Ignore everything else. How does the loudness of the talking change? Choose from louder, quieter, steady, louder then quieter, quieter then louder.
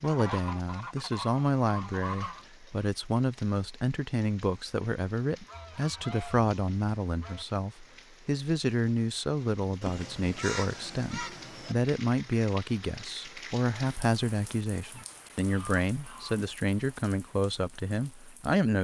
steady.